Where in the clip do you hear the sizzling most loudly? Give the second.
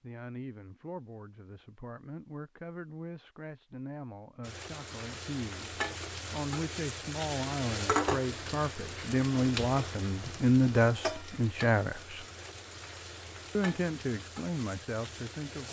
8 s.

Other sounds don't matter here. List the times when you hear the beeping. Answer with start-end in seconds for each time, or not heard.
not heard.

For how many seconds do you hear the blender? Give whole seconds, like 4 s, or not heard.
not heard.